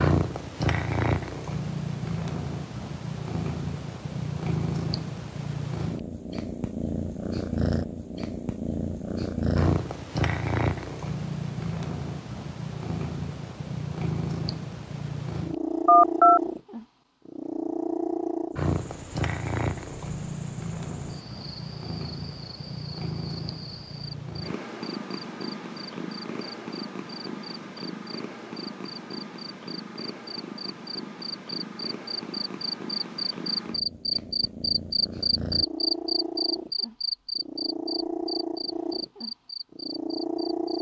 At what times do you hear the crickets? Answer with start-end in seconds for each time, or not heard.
18.5-40.7.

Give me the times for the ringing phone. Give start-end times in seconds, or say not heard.
15.8-16.4.